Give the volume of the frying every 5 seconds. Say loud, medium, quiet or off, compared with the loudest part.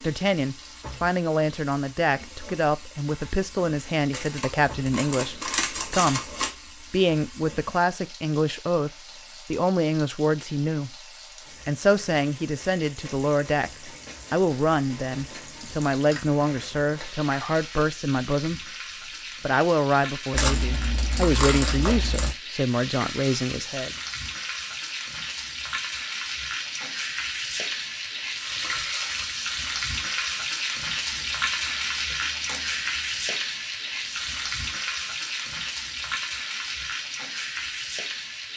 quiet, quiet, quiet, medium, medium, loud, loud, loud.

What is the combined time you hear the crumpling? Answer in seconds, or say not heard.
7 s.